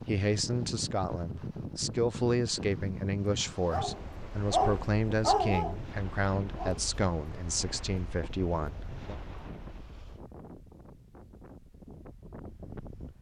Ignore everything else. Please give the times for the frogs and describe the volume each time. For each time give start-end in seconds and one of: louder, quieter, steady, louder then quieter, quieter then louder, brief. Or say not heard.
not heard.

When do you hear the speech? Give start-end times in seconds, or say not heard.
0.1-9.2.